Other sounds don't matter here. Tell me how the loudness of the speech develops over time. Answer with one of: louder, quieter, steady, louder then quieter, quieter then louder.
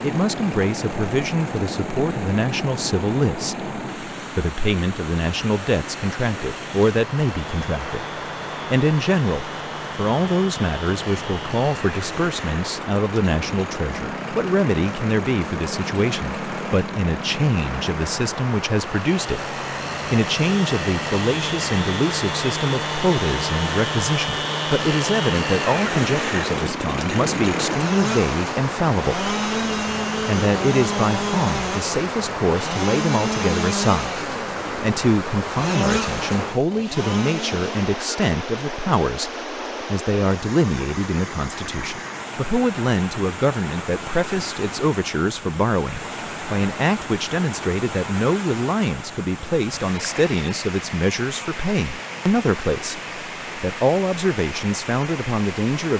steady.